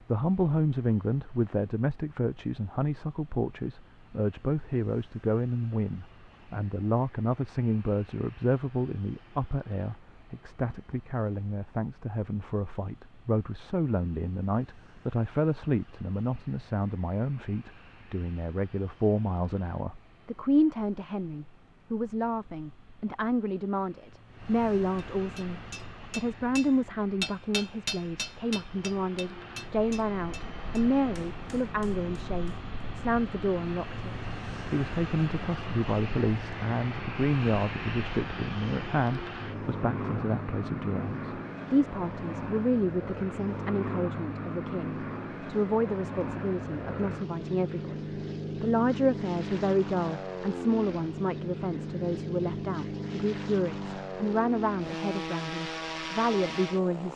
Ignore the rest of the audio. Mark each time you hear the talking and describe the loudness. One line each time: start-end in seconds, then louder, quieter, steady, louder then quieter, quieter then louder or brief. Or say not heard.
0.1-57.1 steady.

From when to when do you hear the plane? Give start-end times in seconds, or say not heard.
0.0-57.1.